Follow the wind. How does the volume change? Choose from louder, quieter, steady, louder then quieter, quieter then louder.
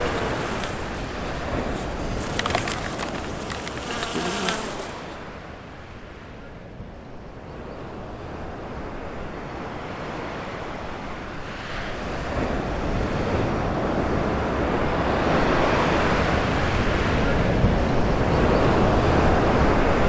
quieter then louder.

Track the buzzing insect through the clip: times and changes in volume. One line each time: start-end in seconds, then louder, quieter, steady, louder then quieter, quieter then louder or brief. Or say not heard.
0.0-5.2 quieter then louder.